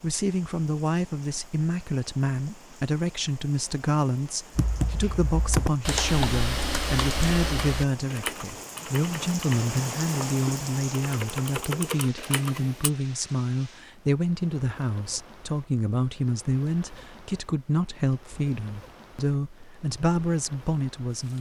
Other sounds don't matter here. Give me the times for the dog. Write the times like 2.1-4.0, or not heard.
not heard.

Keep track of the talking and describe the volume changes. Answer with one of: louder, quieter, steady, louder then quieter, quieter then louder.
steady.